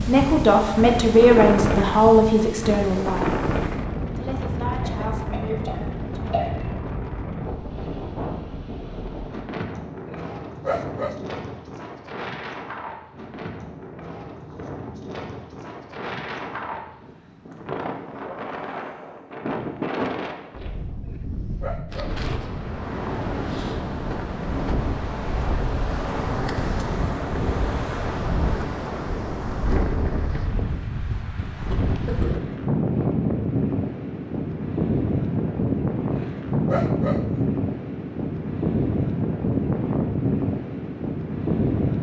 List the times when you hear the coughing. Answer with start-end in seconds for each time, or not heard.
4.8-6.7, 31.7-32.3.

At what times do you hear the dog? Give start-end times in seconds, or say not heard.
10.1-11.4, 21.1-22.2, 36.1-37.5.